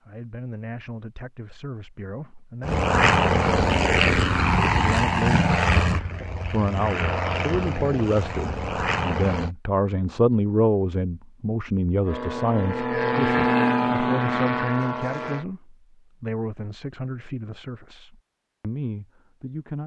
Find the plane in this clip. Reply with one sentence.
You can hear the plane from 2.6 to 9.5 s and from 12.1 to 15.4 s.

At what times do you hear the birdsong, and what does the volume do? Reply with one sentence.
The birdsong can't be heard in this clip.